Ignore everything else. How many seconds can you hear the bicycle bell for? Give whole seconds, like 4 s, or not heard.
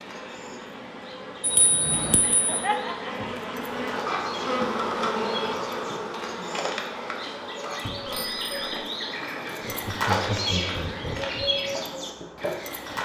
2 s.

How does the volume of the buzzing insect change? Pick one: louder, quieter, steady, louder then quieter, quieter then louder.
louder then quieter.